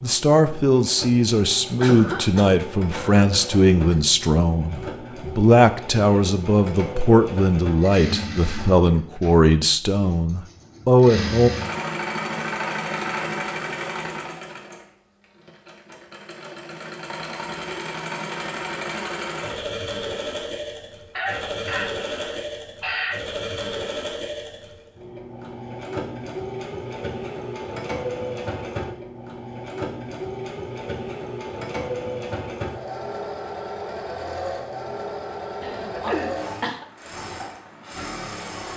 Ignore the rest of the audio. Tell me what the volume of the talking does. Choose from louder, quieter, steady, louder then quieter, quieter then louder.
steady.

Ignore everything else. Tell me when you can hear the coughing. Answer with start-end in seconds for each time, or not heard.
1.8-4.0, 21.1-23.1, 35.6-36.9.